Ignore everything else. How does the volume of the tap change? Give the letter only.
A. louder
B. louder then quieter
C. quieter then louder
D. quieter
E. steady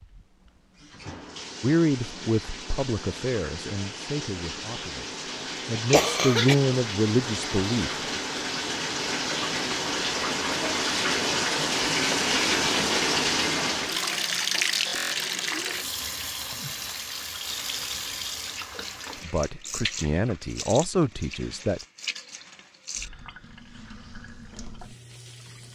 B.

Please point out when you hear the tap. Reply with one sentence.
The tap can be heard from 0.0 to 25.7 s.